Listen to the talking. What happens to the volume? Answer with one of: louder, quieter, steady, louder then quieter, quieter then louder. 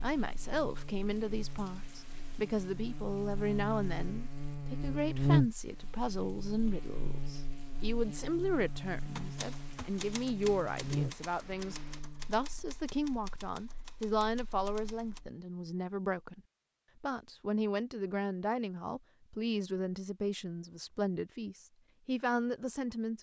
steady.